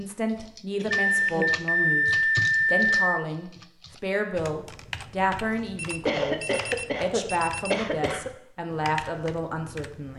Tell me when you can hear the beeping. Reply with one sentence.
You can hear the beeping from 1.1 to 3.2 s and from 5.8 to 7.8 s.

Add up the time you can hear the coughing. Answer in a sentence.
You can hear the coughing for 3 seconds altogether.